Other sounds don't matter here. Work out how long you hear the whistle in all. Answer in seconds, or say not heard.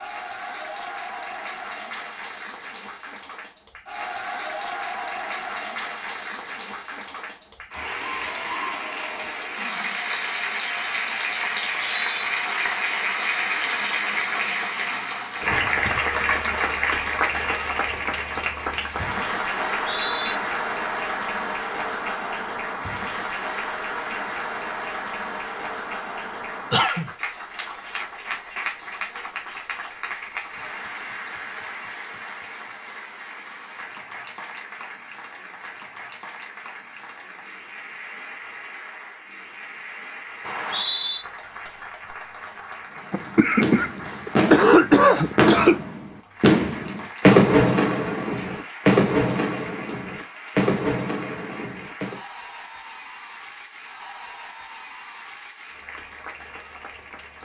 2 s.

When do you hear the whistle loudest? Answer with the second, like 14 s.
41 s.